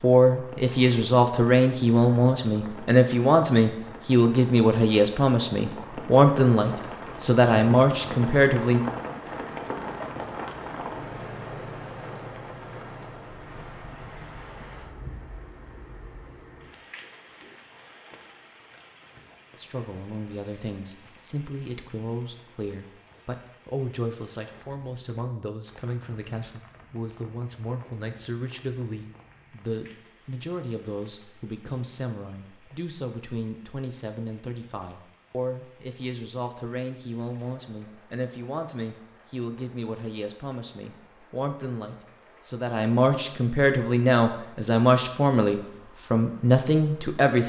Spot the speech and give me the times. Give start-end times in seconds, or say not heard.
0.0-8.8, 19.6-47.4.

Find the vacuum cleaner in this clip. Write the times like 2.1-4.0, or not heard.
not heard.